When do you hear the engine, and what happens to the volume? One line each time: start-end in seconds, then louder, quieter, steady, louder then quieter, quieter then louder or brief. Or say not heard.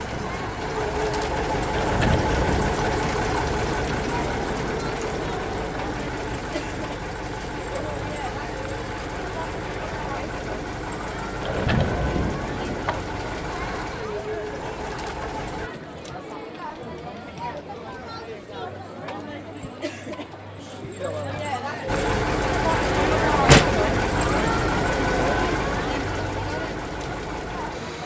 0.0-15.7 quieter
21.9-28.0 quieter.